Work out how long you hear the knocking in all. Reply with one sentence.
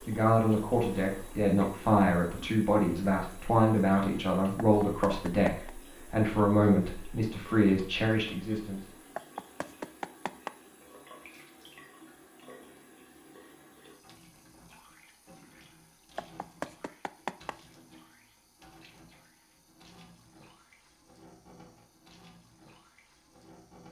You can hear the knocking for 4 seconds altogether.